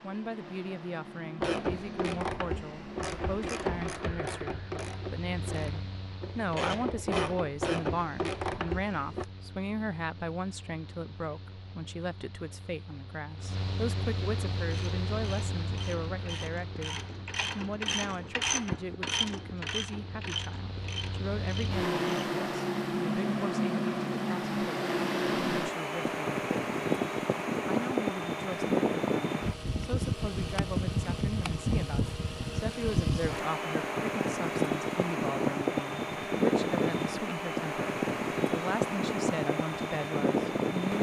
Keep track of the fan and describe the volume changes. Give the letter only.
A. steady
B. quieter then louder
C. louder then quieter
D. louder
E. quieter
D.